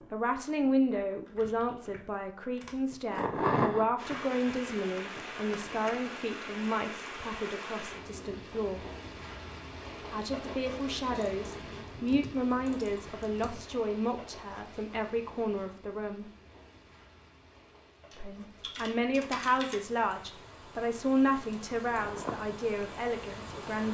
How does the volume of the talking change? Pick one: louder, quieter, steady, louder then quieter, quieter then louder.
steady.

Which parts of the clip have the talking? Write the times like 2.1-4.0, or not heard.
0.1-8.8, 10.1-16.3, 18.1-23.8.